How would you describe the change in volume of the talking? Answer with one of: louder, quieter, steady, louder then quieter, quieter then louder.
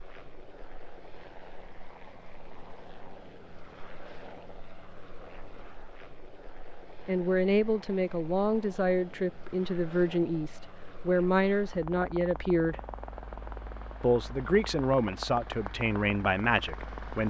steady.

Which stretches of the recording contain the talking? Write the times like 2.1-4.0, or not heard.
7.0-12.8, 14.0-17.2.